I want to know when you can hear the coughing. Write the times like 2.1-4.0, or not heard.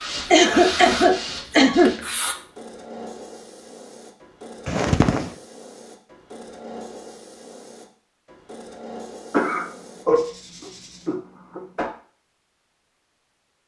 0.3-1.9, 4.7-5.3, 9.3-11.9.